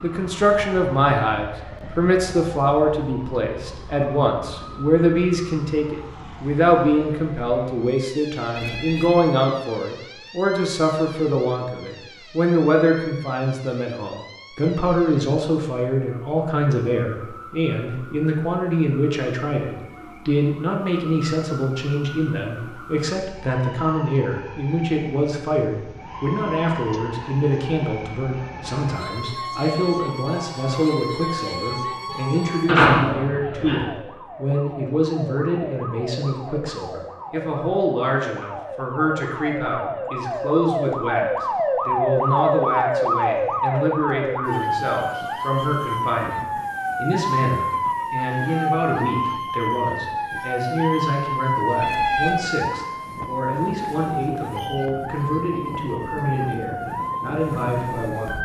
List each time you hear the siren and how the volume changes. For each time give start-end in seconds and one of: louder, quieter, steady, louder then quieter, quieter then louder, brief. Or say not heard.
0.0-58.4 louder.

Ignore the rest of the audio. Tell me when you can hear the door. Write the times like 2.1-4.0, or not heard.
32.6-33.9.